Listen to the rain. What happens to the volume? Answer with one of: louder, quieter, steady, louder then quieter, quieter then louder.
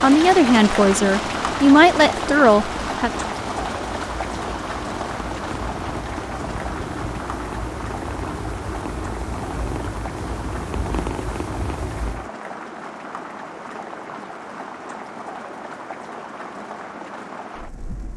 quieter.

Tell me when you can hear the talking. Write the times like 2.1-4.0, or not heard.
0.0-3.1.